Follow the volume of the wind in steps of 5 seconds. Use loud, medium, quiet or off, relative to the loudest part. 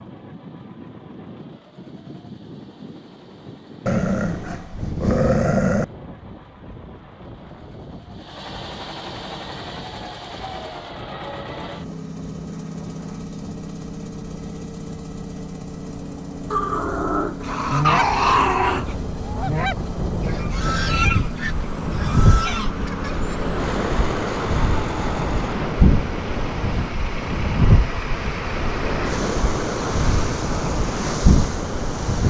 quiet, quiet, quiet, quiet, loud, loud, loud.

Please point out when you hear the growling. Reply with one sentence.
You can hear the growling from 3.9 to 5.8 s and from 16.5 to 18.9 s.